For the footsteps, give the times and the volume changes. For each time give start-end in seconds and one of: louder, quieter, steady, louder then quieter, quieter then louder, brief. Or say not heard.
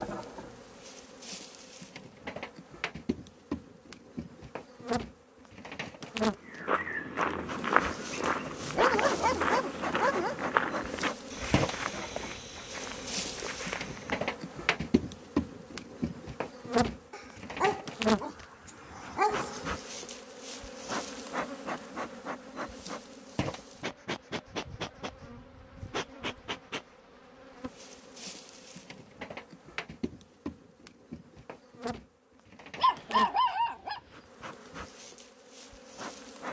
6.5-14.2 quieter.